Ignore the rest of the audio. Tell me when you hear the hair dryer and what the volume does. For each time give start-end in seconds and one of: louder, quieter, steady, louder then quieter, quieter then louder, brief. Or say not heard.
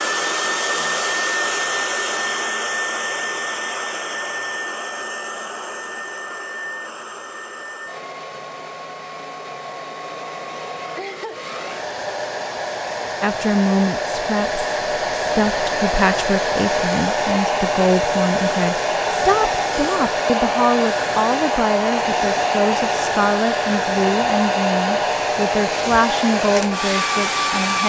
0.0-27.8 quieter then louder.